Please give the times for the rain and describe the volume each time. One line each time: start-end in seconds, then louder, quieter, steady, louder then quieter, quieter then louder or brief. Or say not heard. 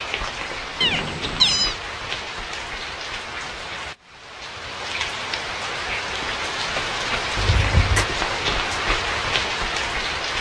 0.0-10.3 louder.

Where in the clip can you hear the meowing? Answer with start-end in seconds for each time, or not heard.
0.8-1.8, 7.3-8.1.